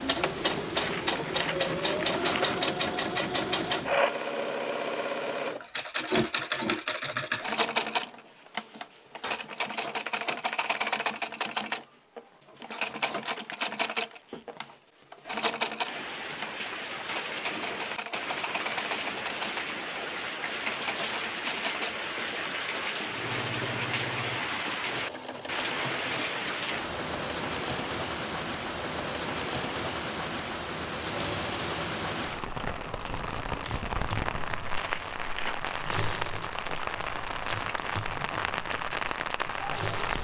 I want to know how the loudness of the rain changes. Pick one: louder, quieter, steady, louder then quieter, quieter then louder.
steady.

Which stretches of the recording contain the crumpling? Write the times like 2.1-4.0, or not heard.
0.8-2.6, 34.7-36.0.